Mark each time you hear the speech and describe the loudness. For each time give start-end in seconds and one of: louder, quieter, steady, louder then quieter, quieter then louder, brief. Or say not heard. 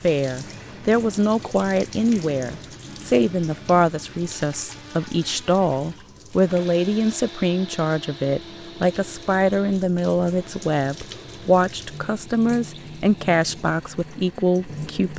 0.0-15.1 steady.